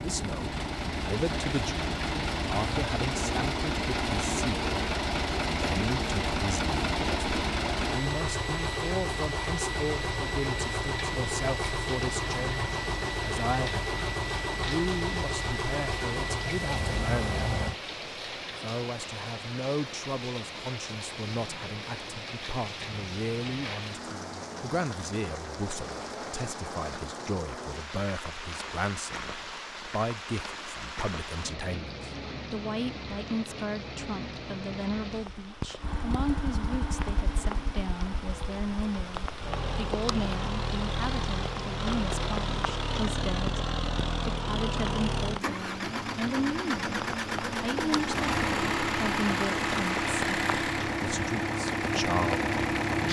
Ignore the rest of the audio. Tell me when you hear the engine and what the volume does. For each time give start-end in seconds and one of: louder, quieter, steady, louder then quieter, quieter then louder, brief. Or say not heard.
0.0-17.8 steady
35.8-53.0 louder.